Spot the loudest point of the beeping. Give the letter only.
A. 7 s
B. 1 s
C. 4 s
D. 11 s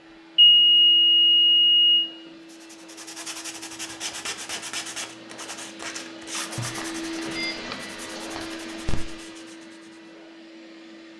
B.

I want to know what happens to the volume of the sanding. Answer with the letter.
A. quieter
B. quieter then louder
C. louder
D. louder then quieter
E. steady
A.